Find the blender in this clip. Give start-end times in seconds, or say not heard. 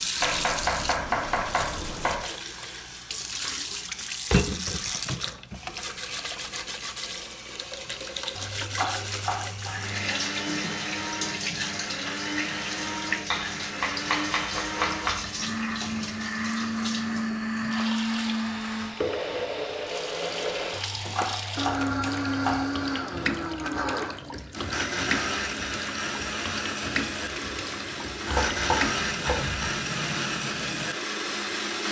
9.7-31.8.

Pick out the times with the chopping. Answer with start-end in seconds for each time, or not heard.
0.2-2.3, 8.3-10.1, 13.3-15.2, 20.7-22.6, 28.2-29.8.